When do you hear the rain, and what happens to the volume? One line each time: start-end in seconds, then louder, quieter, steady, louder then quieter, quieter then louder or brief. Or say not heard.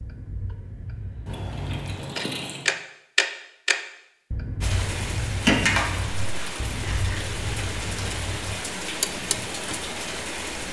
4.6-10.6 steady.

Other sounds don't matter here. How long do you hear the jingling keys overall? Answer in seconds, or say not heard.
3 s.